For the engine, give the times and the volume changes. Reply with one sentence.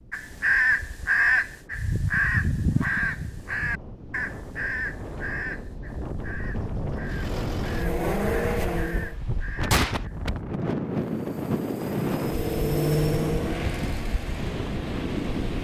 You can hear the engine briefly from 7.0 to 9.2 s; and from 11.1 to 15.5 s, getting louder then quieter.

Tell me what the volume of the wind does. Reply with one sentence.
The loudness of the wind goes up.